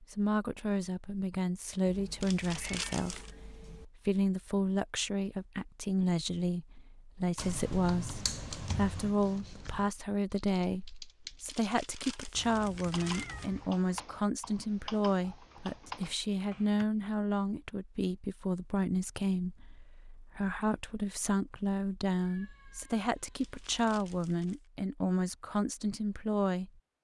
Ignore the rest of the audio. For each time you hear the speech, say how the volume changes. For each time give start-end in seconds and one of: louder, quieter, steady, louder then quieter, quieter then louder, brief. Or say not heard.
0.0-26.7 steady.